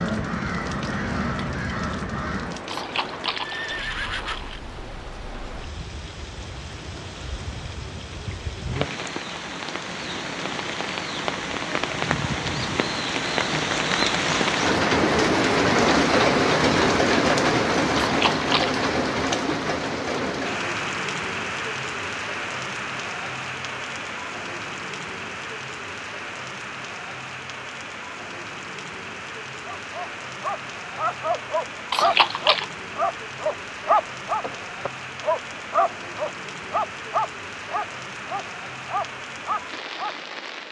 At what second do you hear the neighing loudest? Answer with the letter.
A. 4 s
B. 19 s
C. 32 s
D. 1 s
C.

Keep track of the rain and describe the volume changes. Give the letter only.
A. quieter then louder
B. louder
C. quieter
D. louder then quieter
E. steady
D.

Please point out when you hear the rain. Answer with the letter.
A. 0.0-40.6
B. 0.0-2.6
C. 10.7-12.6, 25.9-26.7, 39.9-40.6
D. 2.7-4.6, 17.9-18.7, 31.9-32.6
A.